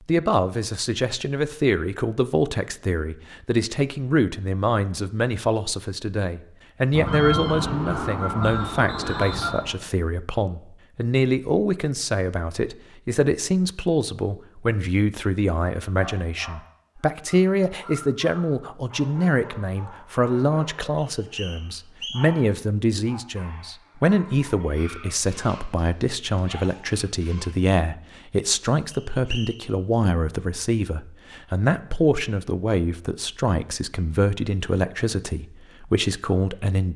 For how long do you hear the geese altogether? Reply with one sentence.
The geese can be heard for 3 seconds in total.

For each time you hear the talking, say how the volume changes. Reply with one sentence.
The talking can be heard from 0.1 to 36.9 s, at a steady volume.